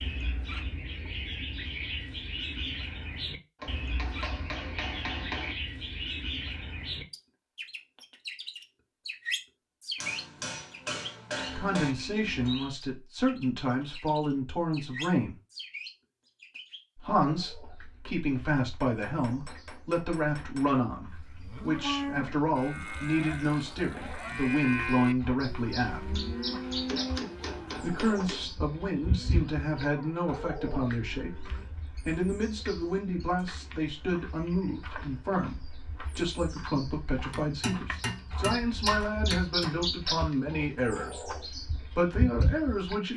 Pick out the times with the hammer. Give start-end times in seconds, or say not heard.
3.6-5.5, 9.9-11.9, 18.8-20.8, 26.6-28.5, 37.3-39.7.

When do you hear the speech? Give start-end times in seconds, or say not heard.
11.5-15.3, 16.9-26.2, 27.8-43.1.